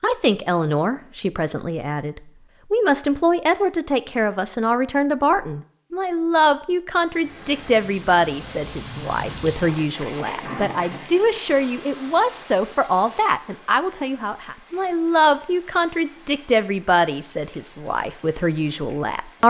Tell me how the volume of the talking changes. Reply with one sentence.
The volume of the talking stays about the same.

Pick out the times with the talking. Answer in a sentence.
The talking can be heard from 0.0 to 19.4 s.